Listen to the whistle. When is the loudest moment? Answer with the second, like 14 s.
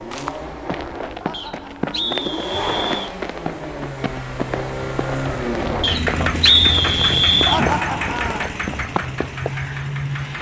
7 s.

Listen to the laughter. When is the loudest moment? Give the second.
8 s.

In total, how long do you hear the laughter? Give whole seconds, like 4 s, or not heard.
2 s.